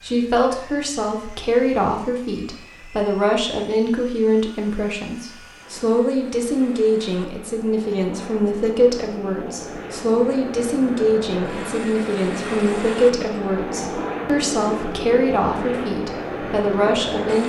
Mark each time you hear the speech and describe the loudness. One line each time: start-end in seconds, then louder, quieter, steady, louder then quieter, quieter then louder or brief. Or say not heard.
0.0-17.4 steady.